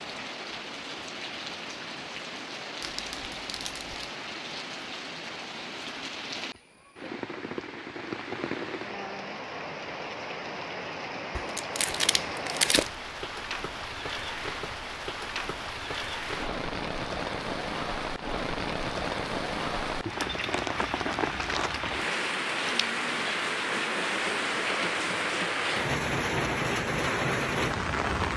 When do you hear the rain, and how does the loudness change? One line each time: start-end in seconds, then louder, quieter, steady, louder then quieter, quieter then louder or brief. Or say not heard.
0.0-28.3 louder.